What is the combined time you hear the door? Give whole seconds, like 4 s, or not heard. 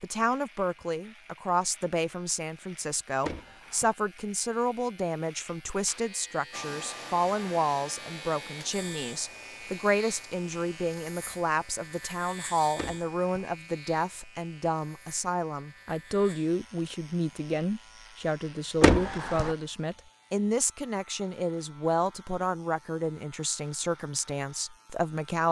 2 s.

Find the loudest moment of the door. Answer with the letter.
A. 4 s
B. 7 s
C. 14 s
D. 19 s
D.